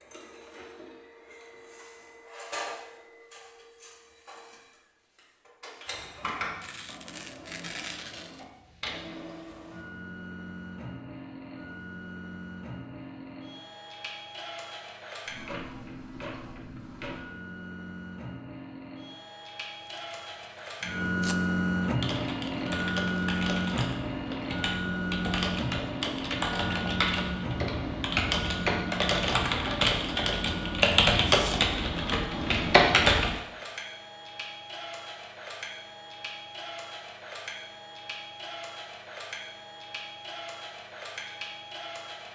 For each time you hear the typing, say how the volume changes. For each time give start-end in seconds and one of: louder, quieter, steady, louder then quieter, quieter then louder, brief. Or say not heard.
21.8-33.4 louder.